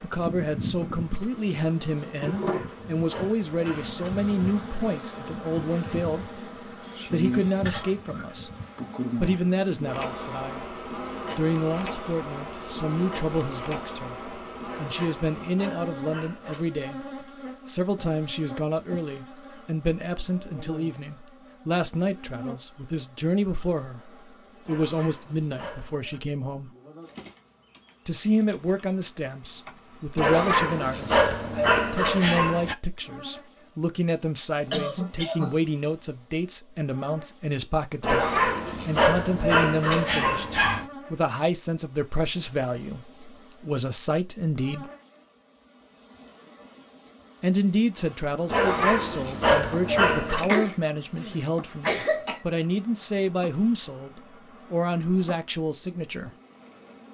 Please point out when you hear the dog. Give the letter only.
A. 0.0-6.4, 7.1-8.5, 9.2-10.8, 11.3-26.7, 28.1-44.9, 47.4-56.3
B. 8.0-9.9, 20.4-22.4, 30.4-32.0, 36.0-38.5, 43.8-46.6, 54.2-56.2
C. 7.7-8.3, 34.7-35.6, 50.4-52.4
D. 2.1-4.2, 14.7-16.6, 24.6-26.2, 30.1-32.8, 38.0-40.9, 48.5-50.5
D.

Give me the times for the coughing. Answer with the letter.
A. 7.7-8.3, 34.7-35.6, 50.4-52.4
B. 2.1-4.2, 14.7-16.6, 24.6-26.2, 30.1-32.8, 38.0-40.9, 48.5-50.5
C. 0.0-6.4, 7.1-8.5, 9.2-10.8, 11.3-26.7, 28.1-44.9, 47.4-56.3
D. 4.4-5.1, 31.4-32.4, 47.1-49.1
A.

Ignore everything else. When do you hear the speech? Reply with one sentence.
The speech can be heard from 0.0 to 6.4 s, from 7.1 to 8.5 s, from 9.2 to 10.8 s, from 11.3 to 26.7 s, from 28.1 to 44.9 s and from 47.4 to 56.3 s.